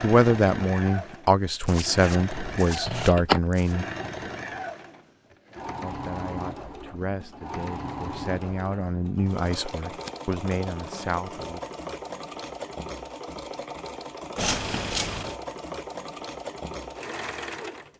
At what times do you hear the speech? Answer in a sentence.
You can hear the speech from 0.0 to 3.9 s and from 5.8 to 11.6 s.